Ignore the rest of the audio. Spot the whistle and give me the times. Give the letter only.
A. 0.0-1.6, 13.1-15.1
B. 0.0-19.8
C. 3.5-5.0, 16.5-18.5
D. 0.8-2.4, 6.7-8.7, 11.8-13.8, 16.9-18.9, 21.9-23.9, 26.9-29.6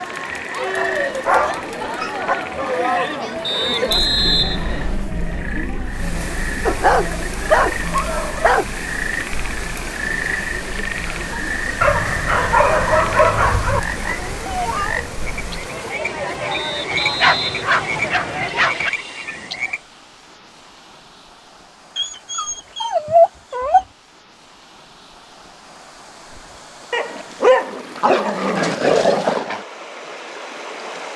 C.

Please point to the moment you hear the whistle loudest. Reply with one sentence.
The volume of the whistle peaks at 4 seconds.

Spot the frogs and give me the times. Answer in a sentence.
The frogs can be heard from 0.0 to 19.8 s.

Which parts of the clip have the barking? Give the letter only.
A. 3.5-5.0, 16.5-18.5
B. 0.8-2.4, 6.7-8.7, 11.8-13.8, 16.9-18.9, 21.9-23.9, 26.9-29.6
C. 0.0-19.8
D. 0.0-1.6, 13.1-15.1
B.